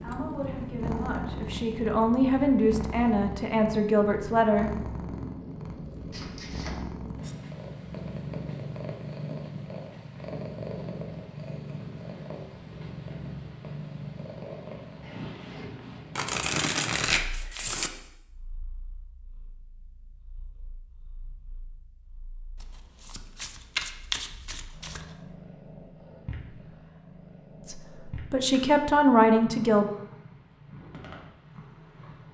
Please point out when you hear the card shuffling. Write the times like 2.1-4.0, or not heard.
6.1-6.8, 16.1-17.9, 22.6-25.1.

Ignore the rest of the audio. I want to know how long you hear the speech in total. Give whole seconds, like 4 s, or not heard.
7 s.